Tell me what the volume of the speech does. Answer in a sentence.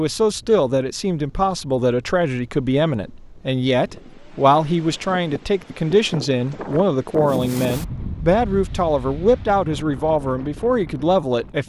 The volume of the speech stays about the same.